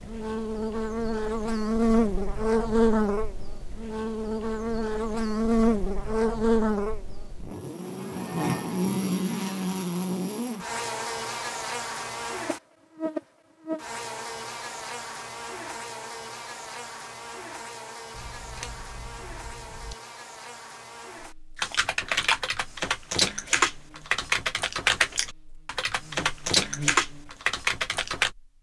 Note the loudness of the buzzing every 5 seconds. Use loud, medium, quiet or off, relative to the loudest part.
loud, loud, medium, quiet, quiet, quiet.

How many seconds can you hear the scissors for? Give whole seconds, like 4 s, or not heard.
2 s.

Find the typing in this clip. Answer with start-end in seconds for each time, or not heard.
21.6-28.3.